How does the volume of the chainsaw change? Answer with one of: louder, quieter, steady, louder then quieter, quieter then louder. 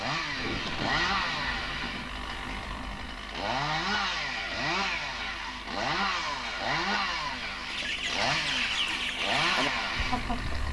steady.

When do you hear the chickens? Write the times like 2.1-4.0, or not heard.
7.7-10.6.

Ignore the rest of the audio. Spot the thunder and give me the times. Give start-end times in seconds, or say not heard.
0.3-3.2.